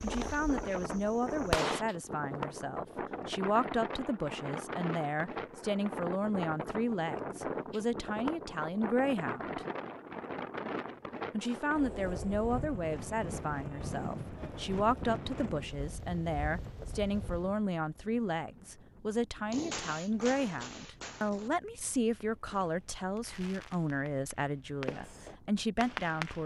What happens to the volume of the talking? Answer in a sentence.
The volume of the talking stays about the same.